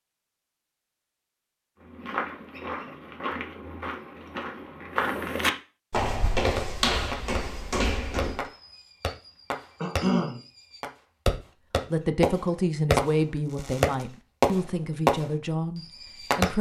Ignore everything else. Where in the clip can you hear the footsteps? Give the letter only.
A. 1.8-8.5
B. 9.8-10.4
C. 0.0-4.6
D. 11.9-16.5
A.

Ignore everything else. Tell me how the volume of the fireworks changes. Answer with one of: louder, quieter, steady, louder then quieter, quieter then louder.
louder.